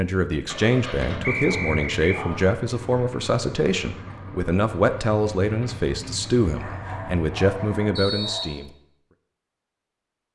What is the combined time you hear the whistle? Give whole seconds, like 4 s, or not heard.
2 s.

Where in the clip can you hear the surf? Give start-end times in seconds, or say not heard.
not heard.